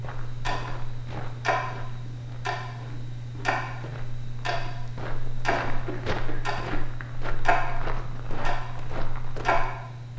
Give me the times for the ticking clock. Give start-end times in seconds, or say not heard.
0.0-10.1.